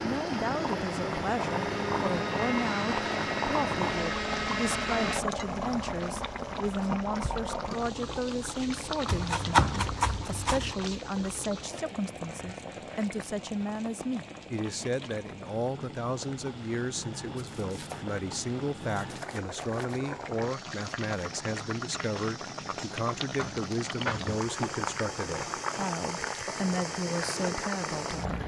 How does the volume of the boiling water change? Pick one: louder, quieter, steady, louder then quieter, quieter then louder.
quieter then louder.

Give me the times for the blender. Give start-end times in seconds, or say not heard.
0.0-5.2.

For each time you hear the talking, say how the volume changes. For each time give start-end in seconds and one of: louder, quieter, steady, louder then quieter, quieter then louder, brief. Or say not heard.
0.0-28.4 steady.